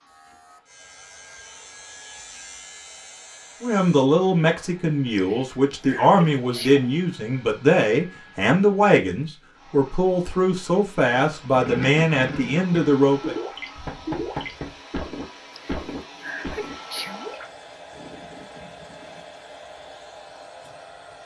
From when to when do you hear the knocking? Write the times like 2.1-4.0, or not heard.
13.8-14.8.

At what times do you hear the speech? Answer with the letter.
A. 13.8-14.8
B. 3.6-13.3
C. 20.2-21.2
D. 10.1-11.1
B.